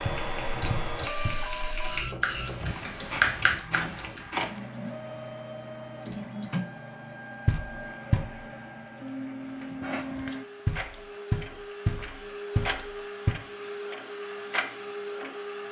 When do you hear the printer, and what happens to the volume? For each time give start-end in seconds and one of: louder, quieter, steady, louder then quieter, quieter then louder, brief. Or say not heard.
0.0-15.6 steady.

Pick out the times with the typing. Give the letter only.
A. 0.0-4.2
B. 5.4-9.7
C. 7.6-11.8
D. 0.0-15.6
A.